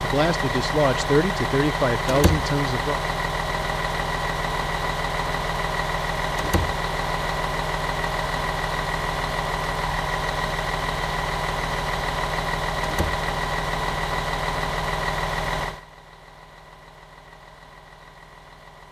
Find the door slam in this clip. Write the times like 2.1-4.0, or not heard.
2.0-2.5, 6.3-6.8, 12.8-13.2.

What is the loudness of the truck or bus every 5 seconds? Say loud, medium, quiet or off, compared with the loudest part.
loud, loud, loud, medium.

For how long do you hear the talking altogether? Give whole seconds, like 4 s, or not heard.
3 s.